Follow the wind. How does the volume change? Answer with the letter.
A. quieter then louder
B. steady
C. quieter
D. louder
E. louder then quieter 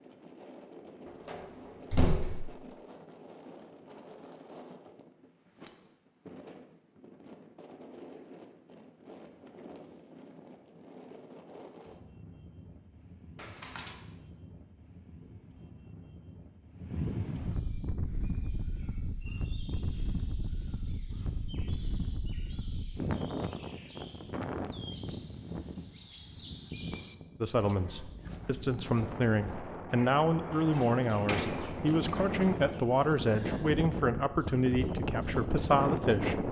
D.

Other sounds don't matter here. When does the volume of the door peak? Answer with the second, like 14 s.
2 s.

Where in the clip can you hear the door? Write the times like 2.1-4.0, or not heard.
1.1-2.5, 13.3-13.9, 30.8-32.1.